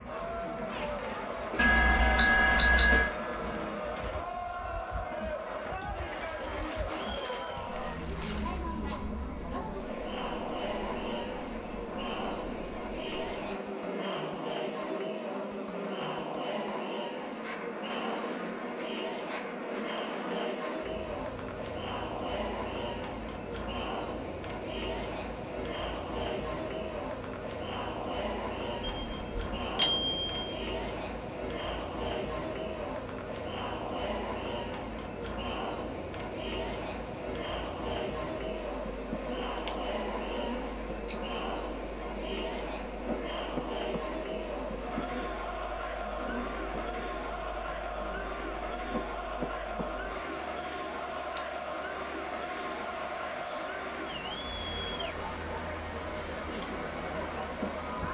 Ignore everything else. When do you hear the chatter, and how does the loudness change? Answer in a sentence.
The chatter can be heard from 0.0 to 58.0 s, at a steady volume.